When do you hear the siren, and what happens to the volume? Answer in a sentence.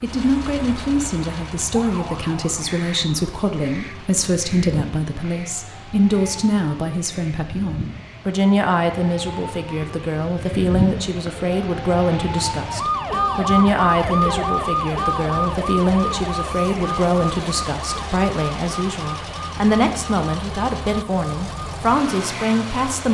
You can hear the siren from 0.0 to 23.0 s, getting louder then quieter.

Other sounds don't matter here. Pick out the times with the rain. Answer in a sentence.
The rain can't be heard in this clip.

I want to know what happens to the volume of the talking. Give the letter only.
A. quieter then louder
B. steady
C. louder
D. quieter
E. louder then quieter
B.